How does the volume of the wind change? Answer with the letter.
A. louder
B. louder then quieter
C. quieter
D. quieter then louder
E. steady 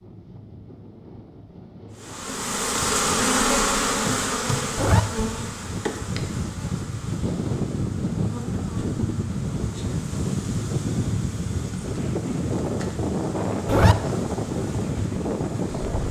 A.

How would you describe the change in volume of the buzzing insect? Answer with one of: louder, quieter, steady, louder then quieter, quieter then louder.
quieter.